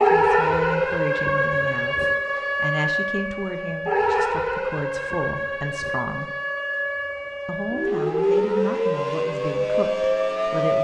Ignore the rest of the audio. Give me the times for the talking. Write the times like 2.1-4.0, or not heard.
0.0-6.3, 7.5-10.7.